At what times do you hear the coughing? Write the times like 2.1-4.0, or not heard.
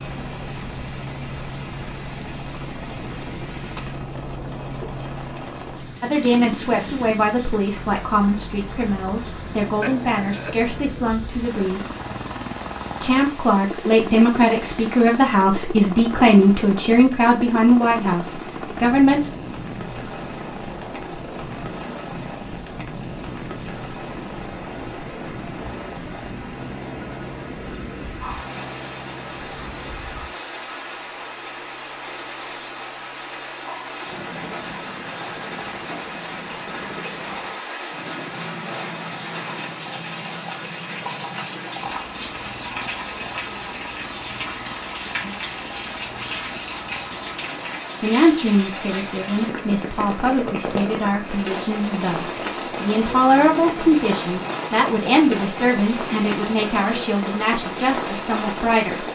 9.8-10.6.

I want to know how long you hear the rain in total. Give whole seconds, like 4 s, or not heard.
59 s.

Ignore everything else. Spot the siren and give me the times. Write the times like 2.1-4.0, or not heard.
not heard.